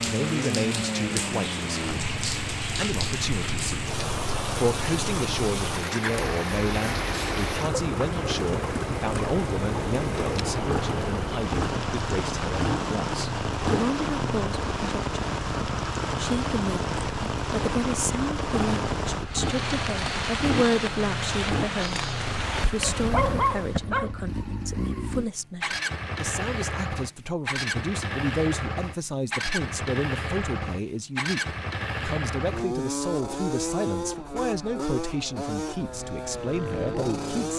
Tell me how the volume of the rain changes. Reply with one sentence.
The volume of the rain stays about the same.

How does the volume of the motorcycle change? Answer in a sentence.
The volume of the motorcycle stays about the same.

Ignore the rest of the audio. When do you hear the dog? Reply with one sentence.
The dog can be heard from 22.2 to 24.1 s.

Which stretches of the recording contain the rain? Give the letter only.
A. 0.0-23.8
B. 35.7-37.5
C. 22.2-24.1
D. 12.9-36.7
A.